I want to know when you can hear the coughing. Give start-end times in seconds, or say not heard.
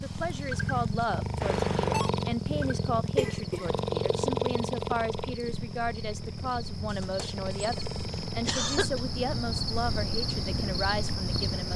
3.1-4.2, 8.4-9.1.